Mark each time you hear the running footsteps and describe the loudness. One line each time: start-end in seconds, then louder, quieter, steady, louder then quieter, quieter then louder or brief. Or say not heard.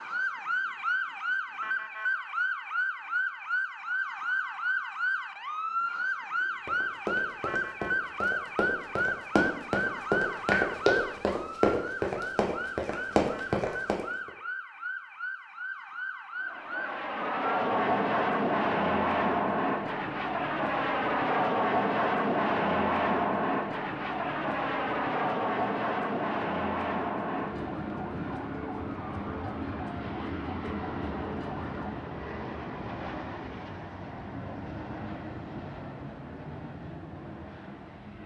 6.7-14.3 louder.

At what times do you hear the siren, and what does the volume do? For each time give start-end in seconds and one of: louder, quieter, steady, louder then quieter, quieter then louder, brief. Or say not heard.
0.0-32.1 quieter.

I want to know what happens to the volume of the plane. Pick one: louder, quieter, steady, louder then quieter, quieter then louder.
quieter.